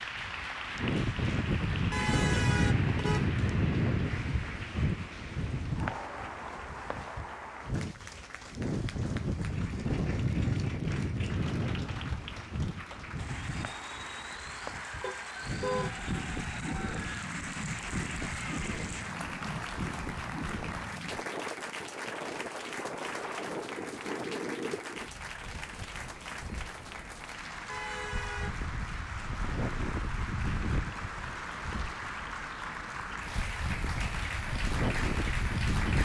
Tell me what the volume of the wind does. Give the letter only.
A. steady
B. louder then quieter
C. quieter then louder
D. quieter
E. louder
D.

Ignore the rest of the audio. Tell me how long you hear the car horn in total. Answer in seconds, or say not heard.
3 s.